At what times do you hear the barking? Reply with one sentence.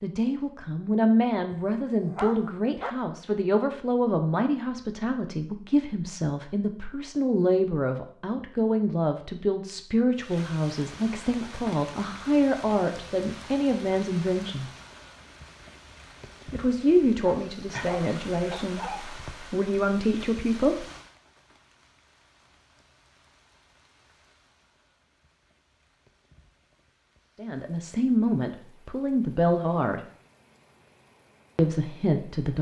You can hear the barking from 1.5 to 2.9 s and from 17.2 to 19.0 s.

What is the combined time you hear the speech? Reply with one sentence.
The speech can be heard for 23 seconds in total.